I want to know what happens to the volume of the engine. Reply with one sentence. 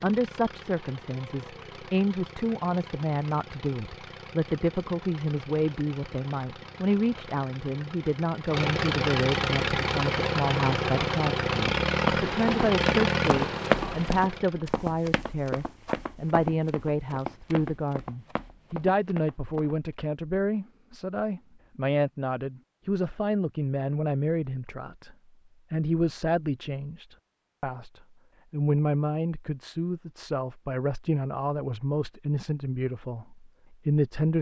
The loudness of the engine goes up.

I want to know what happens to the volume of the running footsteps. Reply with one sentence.
The loudness of the running footsteps goes down.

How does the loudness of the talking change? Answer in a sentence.
The loudness of the talking stays about the same.